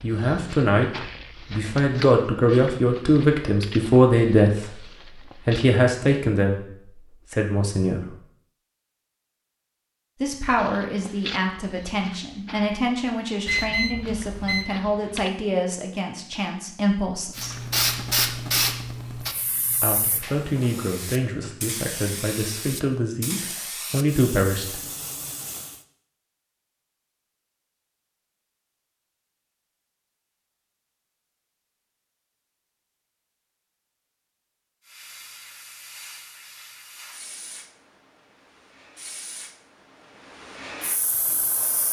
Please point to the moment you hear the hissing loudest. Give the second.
18 s.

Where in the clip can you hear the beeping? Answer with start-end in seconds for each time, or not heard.
13.4-14.8.